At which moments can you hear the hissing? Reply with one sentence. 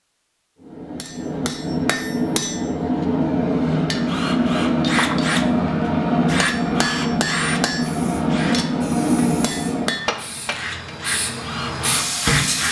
The hissing can be heard from 7.8 to 12.6 s.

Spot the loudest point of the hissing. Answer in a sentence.
The volume of the hissing peaks at 12 seconds.